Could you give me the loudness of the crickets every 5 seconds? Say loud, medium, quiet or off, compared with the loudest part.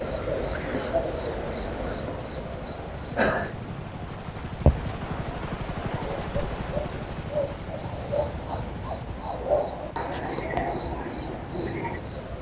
loud, medium, loud.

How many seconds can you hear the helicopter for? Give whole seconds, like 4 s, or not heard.
12 s.